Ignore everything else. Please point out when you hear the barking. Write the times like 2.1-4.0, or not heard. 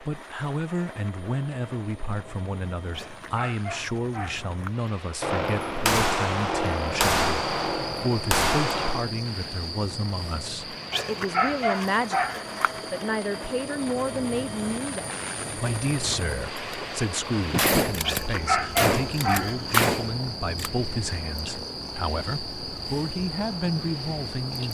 2.9-4.7, 10.9-13.1, 18.1-19.9.